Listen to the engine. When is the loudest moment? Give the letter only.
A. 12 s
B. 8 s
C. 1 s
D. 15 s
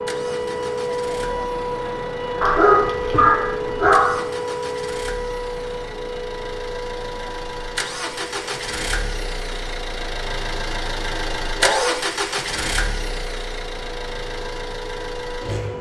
A.